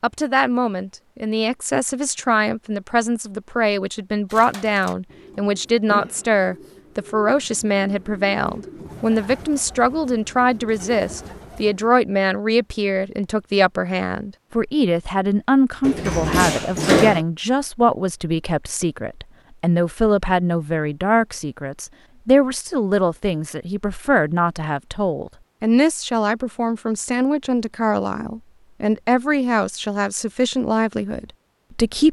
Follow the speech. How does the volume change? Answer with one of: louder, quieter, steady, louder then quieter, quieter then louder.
steady.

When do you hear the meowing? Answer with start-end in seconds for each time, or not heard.
not heard.